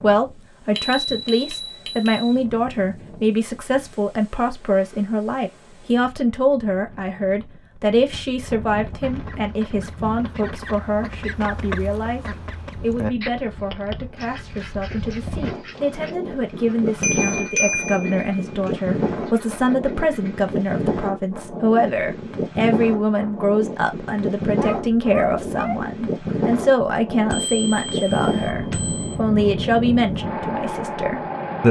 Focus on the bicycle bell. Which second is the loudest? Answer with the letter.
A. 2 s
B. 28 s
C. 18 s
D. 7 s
C.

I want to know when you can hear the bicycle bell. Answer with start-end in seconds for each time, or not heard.
0.8-2.3, 17.0-18.4, 27.3-29.1.